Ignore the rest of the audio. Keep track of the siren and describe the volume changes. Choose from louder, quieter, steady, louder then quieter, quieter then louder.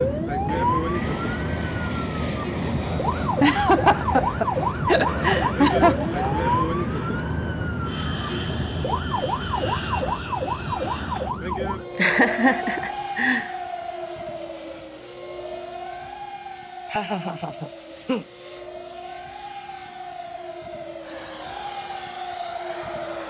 quieter.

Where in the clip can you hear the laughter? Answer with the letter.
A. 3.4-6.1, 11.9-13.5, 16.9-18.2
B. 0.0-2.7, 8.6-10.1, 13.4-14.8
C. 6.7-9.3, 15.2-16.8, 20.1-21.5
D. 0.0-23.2
A.